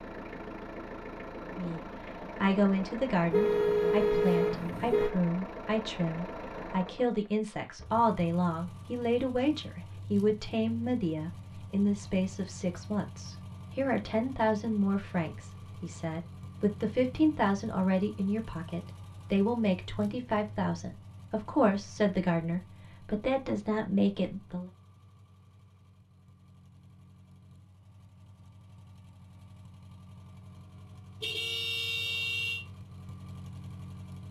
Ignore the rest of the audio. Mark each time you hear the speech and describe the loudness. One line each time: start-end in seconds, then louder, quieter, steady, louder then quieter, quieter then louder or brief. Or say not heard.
1.6-24.7 steady.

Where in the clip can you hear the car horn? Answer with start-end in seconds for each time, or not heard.
3.3-5.2, 31.2-32.6.